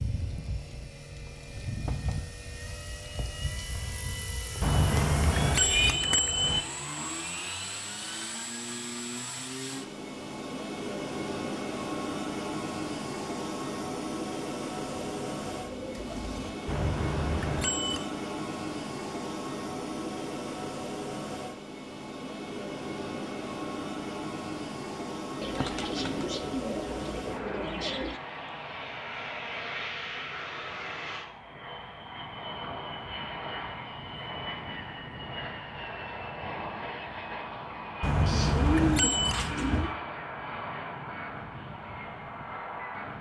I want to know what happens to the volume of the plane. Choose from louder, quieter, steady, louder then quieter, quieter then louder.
steady.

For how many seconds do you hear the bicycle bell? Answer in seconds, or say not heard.
5 s.